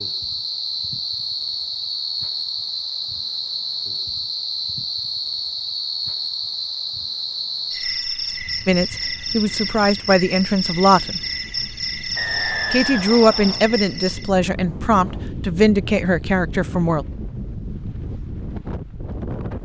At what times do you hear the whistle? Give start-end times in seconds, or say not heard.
12.2-13.7.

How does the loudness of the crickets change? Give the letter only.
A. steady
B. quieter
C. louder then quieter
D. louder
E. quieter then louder
A.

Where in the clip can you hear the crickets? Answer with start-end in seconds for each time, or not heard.
0.0-14.3.